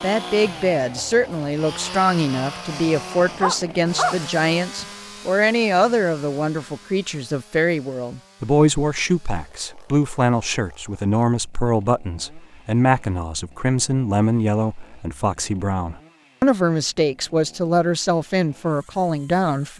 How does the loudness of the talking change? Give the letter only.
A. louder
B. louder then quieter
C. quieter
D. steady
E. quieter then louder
D.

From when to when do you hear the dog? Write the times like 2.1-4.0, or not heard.
3.4-4.8.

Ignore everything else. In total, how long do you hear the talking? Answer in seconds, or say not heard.
20 s.